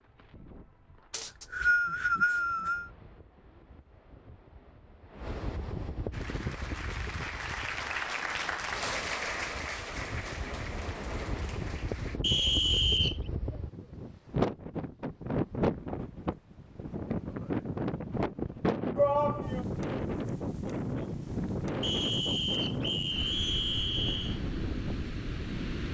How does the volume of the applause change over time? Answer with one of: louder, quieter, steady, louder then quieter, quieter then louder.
louder then quieter.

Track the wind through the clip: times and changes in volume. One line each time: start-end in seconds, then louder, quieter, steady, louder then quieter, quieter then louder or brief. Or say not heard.
0.0-25.9 louder.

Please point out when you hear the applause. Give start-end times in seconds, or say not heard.
6.1-12.2.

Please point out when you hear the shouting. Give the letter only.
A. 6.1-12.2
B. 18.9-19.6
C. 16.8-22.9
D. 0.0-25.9
B.